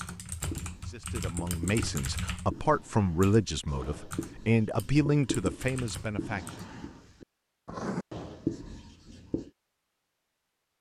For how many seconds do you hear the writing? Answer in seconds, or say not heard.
9 s.